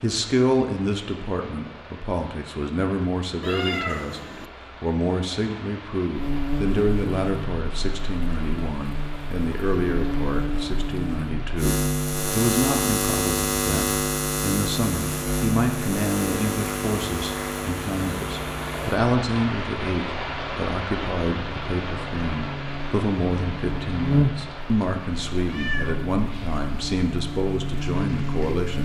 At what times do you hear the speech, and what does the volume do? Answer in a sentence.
You can hear the speech from 0.0 to 28.8 s, at a steady volume.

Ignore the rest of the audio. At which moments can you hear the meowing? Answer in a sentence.
You can hear the meowing from 3.4 to 4.5 s and from 25.4 to 26.6 s.